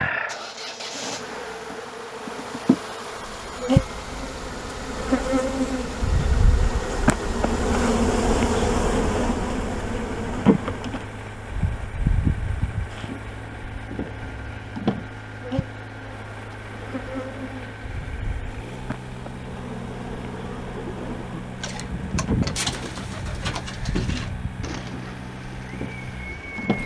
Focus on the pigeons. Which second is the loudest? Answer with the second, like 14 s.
23 s.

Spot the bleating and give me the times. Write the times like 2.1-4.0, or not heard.
not heard.